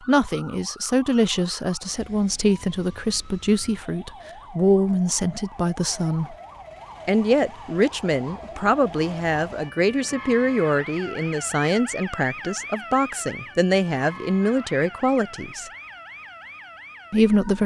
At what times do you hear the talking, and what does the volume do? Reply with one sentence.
The talking can be heard from 0.1 to 6.3 s, at a steady volume; from 7.0 to 15.7 s, at a steady volume; and briefly from 17.1 to 17.6 s.